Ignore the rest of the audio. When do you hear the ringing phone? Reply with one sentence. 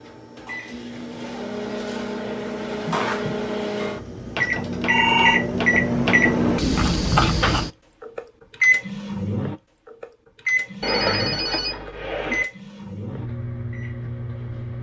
You can hear the ringing phone from 4.8 to 5.4 s and from 10.8 to 12.4 s.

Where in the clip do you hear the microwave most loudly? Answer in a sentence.
The loudest moment of the microwave is at 6 seconds.